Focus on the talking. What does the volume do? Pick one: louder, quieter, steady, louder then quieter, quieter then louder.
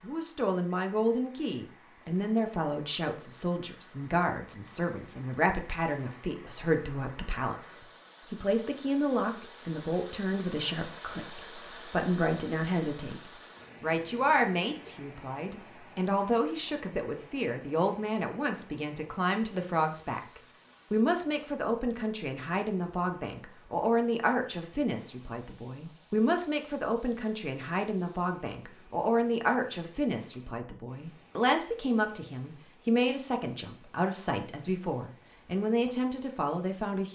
steady.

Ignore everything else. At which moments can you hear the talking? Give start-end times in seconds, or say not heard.
0.0-37.1.